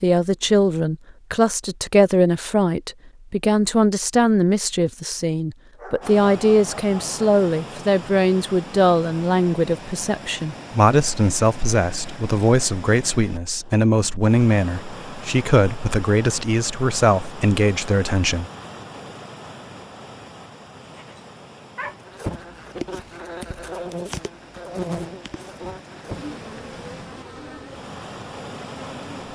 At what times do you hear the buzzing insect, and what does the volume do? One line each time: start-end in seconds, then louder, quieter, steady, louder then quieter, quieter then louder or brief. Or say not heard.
21.8-29.3 quieter.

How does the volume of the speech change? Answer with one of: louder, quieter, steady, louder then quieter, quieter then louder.
steady.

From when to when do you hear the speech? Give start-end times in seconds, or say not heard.
0.0-18.4.